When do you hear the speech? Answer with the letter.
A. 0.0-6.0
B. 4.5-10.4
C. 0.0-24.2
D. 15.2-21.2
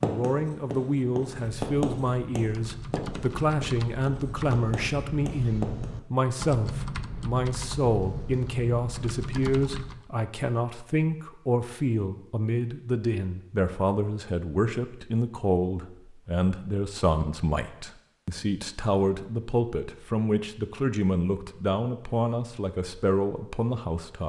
C.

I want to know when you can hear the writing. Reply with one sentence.
The writing can be heard from 0.0 to 6.0 s.